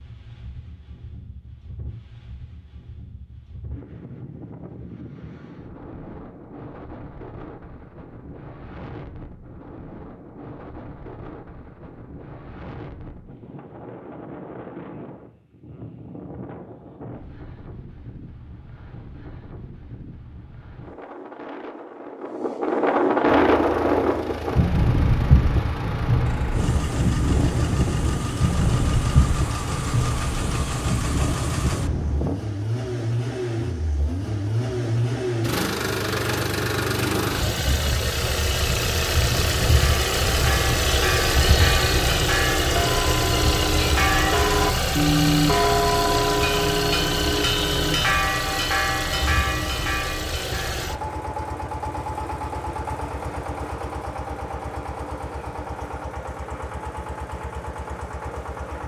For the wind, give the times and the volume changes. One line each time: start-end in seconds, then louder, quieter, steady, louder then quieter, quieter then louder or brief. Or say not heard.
0.0-32.4 louder.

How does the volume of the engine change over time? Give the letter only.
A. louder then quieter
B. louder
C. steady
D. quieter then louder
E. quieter
A.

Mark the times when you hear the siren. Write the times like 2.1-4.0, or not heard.
not heard.